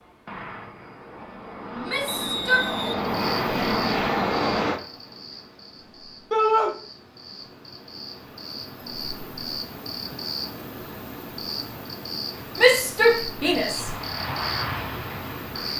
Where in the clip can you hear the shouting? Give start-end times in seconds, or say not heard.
1.8-2.9, 6.3-6.7, 12.6-13.9.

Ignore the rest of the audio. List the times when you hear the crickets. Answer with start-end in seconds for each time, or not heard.
3.0-15.7.